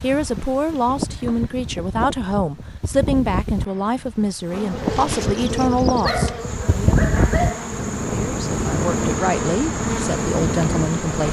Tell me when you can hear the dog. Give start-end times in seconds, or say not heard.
6.0-7.7.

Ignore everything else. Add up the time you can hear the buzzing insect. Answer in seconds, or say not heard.
7 s.